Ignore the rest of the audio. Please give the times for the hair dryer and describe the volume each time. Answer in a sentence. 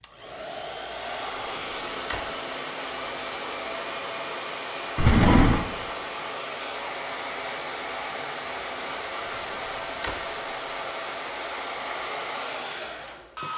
The hair dryer can be heard from 0.0 to 13.5 s, at a steady volume.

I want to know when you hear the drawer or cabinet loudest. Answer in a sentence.
The volume of the drawer or cabinet peaks at 5 seconds.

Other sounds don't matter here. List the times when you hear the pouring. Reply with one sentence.
The pouring can't be heard in this clip.